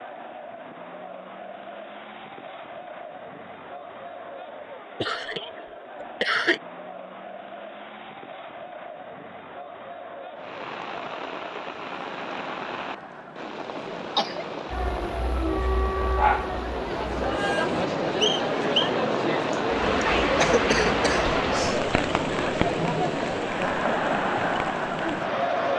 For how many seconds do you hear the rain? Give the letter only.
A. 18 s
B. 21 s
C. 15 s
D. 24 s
C.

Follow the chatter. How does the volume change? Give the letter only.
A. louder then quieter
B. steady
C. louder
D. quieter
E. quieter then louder
C.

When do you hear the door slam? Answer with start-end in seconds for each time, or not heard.
not heard.